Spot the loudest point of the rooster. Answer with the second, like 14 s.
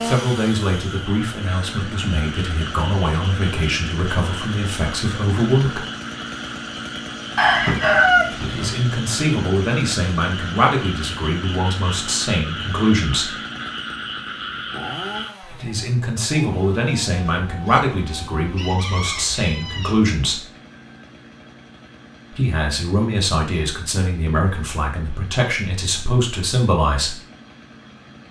8 s.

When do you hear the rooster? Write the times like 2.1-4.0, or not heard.
7.3-8.8, 17.1-20.2.